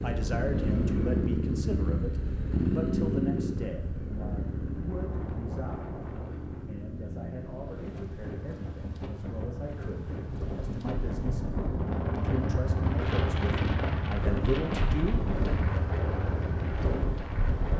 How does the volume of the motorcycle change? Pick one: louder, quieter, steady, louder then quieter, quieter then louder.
quieter then louder.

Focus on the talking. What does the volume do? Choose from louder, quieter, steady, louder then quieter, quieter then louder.
quieter then louder.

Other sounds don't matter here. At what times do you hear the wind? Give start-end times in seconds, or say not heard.
4.6-17.7.